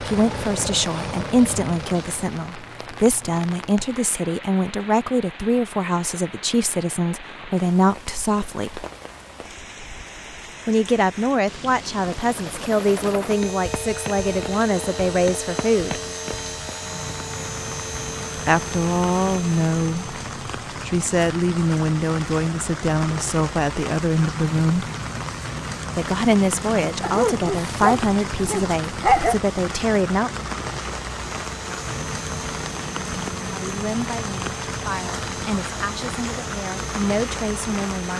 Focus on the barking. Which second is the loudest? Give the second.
29 s.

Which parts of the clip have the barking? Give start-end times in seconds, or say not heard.
27.0-29.4.